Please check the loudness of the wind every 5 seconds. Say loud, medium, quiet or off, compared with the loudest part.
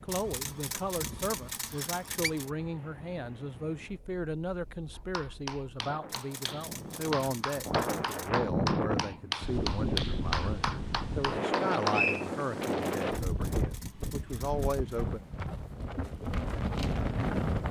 quiet, loud, loud, loud.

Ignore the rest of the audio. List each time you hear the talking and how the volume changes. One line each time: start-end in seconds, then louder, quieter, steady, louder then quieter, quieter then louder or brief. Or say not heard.
0.0-15.2 steady.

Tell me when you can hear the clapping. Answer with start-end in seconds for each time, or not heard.
4.9-12.1.